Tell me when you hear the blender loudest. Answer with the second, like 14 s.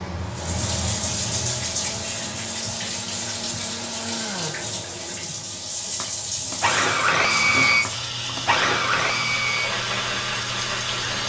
7 s.